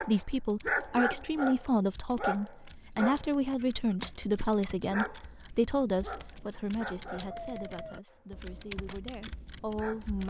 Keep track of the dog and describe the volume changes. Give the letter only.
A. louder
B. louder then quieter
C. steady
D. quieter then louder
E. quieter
E.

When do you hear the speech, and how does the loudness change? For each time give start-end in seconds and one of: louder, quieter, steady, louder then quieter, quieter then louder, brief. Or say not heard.
0.0-10.2 quieter.